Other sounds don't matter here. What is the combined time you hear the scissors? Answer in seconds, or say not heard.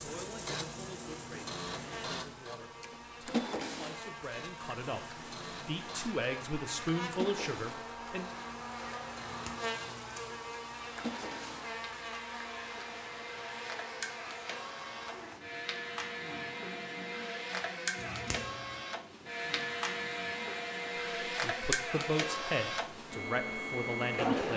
2 s.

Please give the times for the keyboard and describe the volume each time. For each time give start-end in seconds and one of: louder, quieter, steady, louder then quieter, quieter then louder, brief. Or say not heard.
not heard.